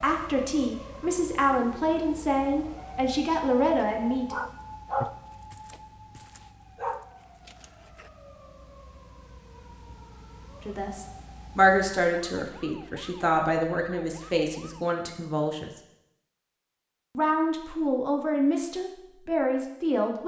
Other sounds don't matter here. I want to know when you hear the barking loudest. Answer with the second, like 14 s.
5 s.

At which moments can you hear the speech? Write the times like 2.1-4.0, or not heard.
0.0-4.3, 10.7-15.7, 17.1-20.2.